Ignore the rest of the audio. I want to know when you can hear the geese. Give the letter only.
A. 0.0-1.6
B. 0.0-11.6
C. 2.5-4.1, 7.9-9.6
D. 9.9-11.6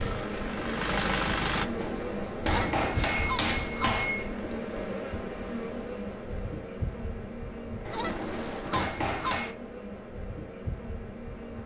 C.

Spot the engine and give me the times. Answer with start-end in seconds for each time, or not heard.
0.0-1.6.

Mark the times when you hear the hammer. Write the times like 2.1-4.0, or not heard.
1.6-4.3, 7.8-9.6.